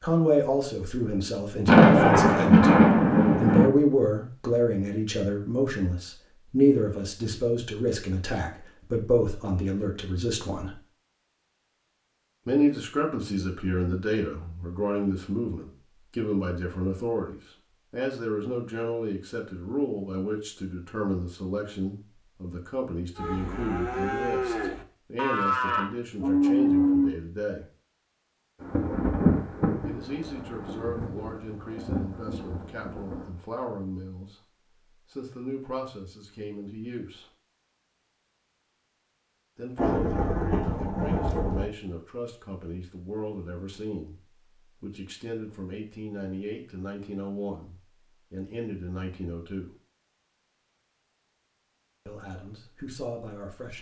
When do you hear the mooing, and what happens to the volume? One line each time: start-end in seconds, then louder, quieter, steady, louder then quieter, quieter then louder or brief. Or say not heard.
23.1-27.2 louder.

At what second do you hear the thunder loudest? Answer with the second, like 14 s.
2 s.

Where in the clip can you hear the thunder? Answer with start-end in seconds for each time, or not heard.
1.6-3.7, 28.6-33.2, 39.8-41.6.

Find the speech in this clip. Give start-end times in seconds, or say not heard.
0.0-10.8, 12.4-27.6, 29.9-34.5, 35.1-37.2, 39.5-49.7, 52.0-53.7.